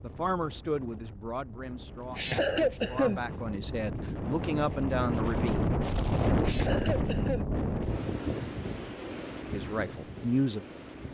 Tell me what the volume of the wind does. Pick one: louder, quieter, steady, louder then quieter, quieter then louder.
louder then quieter.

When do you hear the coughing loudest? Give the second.
3 s.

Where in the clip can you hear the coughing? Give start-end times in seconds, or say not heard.
2.1-3.2, 6.4-7.5.